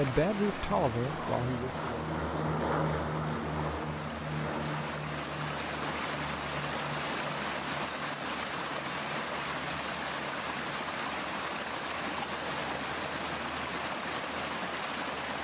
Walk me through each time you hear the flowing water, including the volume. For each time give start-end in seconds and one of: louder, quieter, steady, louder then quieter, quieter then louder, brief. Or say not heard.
0.0-15.3 louder.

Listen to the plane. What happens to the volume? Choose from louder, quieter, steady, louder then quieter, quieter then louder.
quieter.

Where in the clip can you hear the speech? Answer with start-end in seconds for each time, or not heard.
0.0-2.0.